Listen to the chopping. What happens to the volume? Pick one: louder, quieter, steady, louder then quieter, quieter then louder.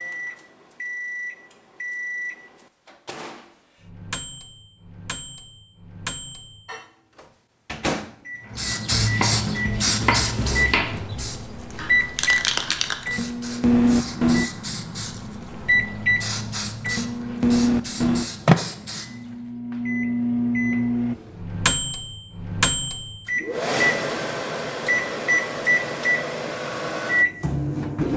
quieter.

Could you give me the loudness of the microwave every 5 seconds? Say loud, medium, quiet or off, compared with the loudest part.
quiet, medium, loud, loud, loud, loud.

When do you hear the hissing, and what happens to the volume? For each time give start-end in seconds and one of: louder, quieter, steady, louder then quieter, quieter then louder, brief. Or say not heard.
8.5-19.4 quieter.